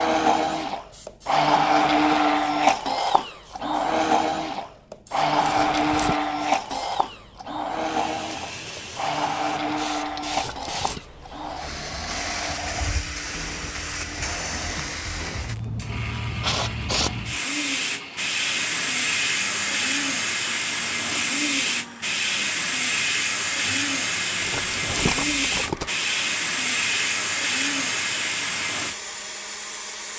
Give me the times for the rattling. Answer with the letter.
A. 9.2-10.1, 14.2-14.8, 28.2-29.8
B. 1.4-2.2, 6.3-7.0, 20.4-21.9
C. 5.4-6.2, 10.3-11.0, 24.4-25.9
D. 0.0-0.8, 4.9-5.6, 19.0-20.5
C.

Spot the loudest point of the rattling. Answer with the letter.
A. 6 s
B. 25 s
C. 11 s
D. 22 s
B.